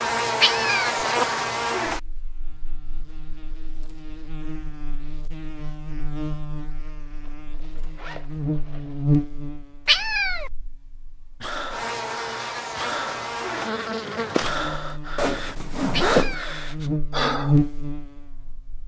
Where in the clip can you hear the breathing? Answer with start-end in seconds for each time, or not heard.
11.4-17.6.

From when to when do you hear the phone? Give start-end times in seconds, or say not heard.
not heard.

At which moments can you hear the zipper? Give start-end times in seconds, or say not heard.
1.0-1.4, 7.2-9.1, 15.2-16.4.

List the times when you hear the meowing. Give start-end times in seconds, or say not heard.
0.4-1.1, 9.8-10.5, 15.9-16.6.